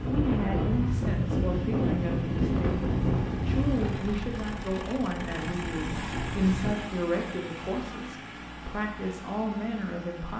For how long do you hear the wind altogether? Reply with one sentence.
You can hear the wind for 7 seconds altogether.